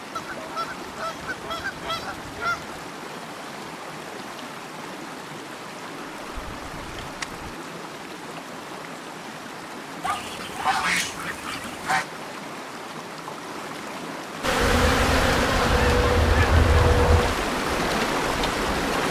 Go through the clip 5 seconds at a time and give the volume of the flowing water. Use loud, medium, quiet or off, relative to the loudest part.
medium, medium, medium, loud.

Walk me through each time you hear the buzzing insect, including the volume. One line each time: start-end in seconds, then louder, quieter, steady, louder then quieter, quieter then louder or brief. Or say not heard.
14.4-19.0 quieter.